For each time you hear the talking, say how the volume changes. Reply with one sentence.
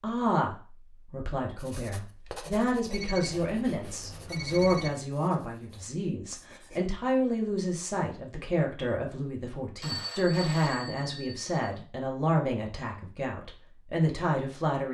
The talking can be heard from 0.0 to 14.8 s, at a steady volume.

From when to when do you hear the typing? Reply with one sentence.
The typing can't be heard in this clip.